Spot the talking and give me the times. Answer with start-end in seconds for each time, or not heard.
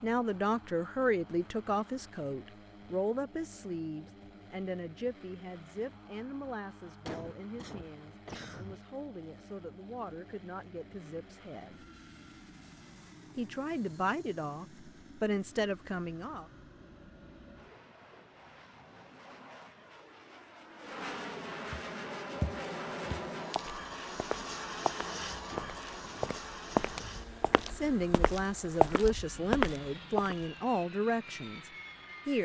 0.0-11.8, 13.3-16.4, 27.7-32.3.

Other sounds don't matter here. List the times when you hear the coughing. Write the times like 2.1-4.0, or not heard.
7.0-8.8, 25.4-27.2.